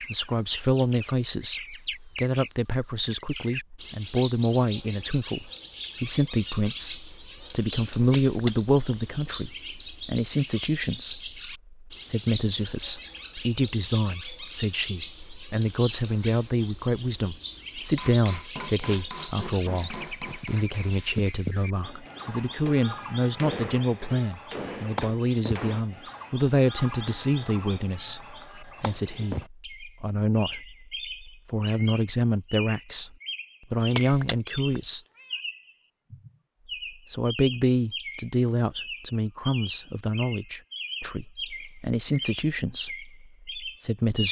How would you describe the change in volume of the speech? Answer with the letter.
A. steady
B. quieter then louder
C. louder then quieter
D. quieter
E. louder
A.